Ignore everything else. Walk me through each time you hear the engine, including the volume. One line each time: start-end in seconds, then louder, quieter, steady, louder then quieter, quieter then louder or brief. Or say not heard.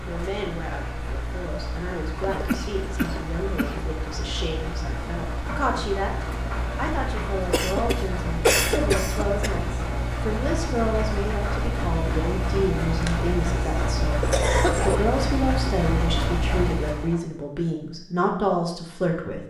0.0-17.2 louder.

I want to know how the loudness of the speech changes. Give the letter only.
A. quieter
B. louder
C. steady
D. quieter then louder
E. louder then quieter
B.